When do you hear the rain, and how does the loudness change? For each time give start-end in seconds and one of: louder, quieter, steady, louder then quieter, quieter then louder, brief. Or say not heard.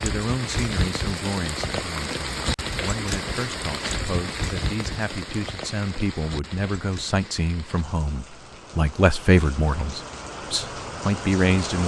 0.0-11.8 quieter then louder.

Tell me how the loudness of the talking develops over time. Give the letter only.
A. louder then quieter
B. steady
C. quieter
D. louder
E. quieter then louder
D.